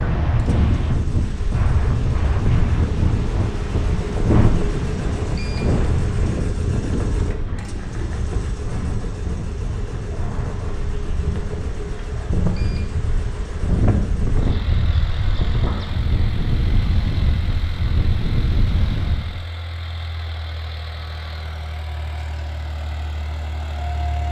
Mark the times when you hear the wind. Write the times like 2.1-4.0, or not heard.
0.0-19.4.